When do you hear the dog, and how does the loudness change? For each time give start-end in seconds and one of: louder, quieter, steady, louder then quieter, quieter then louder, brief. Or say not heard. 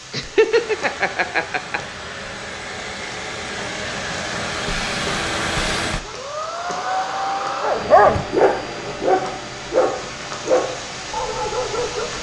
7.6-12.1 quieter.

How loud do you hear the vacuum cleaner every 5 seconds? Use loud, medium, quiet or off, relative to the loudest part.
loud, loud, medium.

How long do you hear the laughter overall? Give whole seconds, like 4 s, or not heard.
2 s.